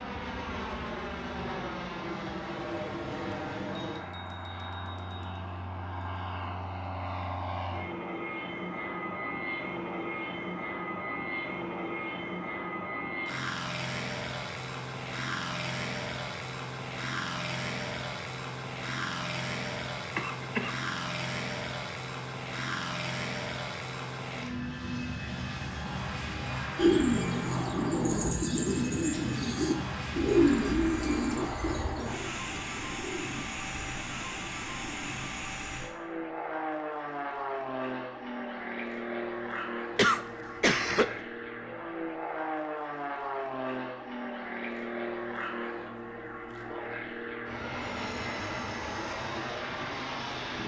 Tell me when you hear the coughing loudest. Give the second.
40 s.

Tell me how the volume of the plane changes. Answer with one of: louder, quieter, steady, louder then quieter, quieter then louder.
steady.